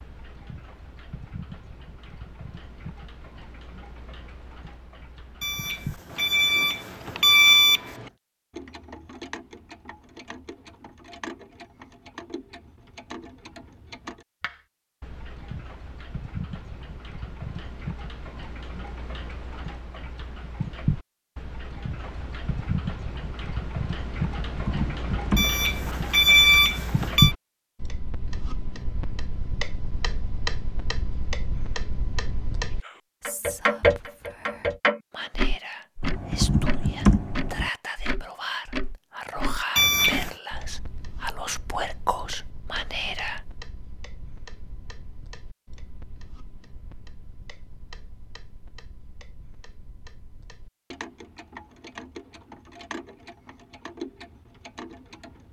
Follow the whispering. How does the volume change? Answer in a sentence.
The loudness of the whispering goes up.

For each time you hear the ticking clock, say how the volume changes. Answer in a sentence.
The ticking clock can be heard from 0.0 to 55.4 s, getting louder then quieter.